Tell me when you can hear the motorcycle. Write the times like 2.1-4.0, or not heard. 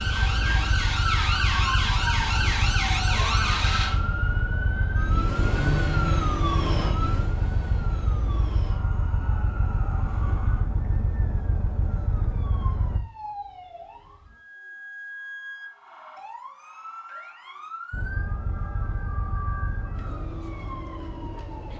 0.0-13.0, 17.9-21.7.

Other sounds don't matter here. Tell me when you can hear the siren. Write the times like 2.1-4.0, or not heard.
0.0-21.7.